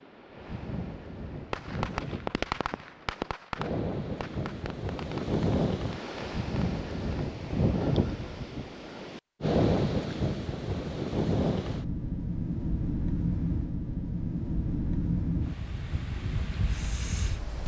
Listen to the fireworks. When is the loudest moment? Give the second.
2 s.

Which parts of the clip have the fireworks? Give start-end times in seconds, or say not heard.
1.4-7.2.